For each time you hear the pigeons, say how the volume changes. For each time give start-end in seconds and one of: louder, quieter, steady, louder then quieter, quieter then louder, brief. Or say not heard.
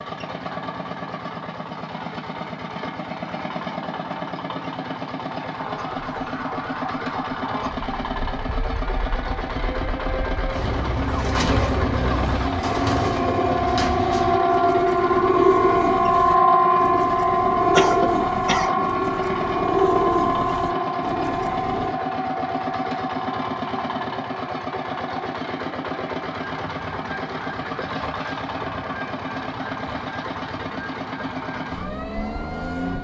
10.5-21.9 steady.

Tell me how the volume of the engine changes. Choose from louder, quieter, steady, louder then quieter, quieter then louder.
steady.